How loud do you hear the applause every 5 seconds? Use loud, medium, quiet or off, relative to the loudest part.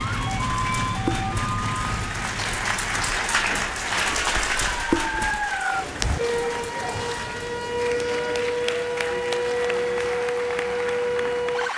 loud, medium, medium.